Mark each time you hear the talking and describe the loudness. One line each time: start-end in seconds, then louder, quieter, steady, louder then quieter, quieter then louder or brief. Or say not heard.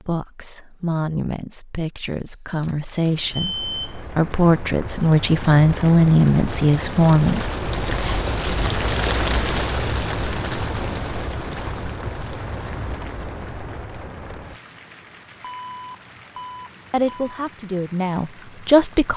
0.0-7.5 louder
16.9-19.1 brief.